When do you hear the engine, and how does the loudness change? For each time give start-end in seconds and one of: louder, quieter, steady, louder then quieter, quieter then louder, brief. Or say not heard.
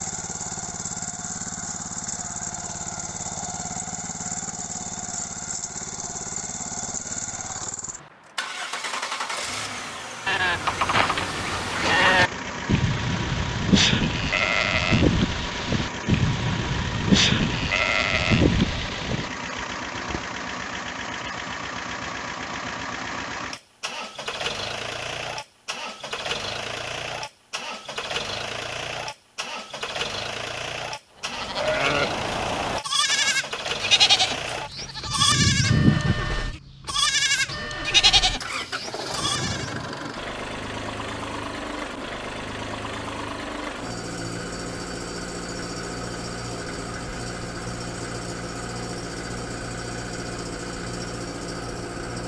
0.0-52.2 steady.